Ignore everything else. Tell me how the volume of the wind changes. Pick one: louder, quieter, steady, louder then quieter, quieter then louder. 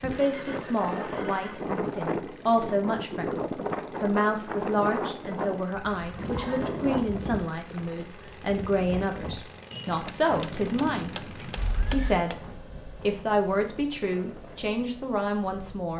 quieter.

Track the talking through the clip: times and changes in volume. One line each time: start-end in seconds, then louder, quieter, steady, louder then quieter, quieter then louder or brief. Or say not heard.
0.0-15.9 steady.